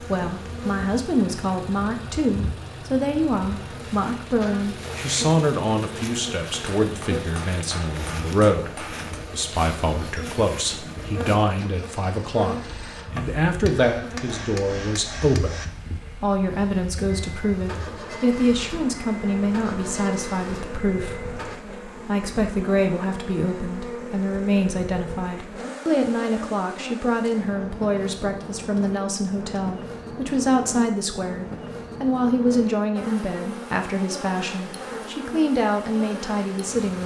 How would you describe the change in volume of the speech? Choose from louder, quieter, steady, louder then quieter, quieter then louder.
steady.